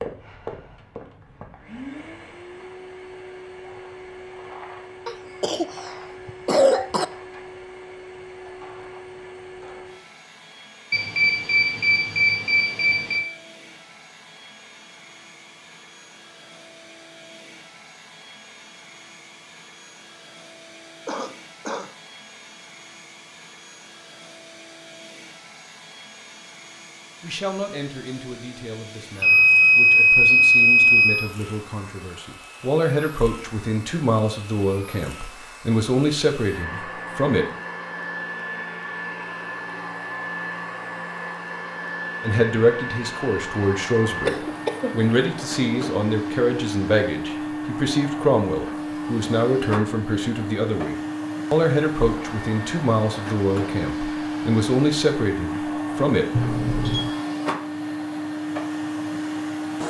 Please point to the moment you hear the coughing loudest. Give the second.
7 s.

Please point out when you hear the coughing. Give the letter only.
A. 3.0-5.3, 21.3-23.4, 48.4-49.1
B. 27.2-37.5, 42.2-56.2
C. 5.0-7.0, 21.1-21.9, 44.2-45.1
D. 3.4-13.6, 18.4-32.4
C.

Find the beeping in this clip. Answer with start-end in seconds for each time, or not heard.
10.9-13.2, 29.2-31.3, 56.3-57.0.